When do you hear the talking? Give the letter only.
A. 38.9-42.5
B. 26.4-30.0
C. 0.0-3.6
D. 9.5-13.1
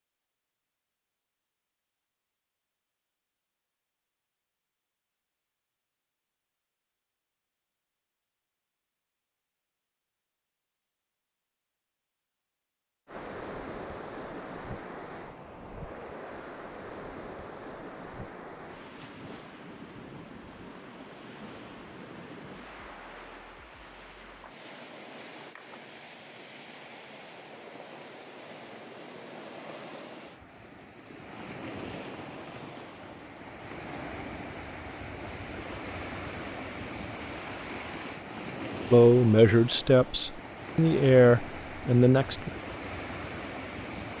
A.